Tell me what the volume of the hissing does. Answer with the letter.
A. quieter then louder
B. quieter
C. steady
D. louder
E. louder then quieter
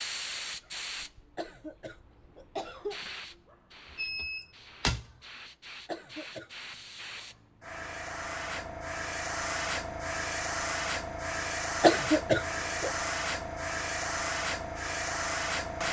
A.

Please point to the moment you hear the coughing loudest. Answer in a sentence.
The loudest moment of the coughing is at 12 seconds.